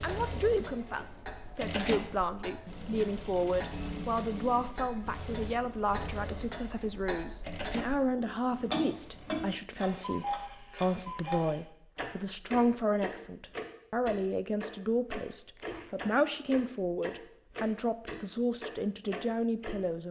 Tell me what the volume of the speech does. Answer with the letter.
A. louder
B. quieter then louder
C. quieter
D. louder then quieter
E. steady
E.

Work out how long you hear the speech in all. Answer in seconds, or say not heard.
20 s.